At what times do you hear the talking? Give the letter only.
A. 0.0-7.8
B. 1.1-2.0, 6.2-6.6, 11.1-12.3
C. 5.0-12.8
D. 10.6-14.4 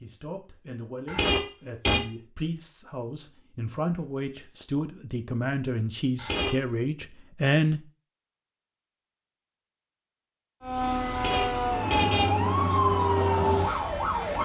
A.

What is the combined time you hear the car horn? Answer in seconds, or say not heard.
3 s.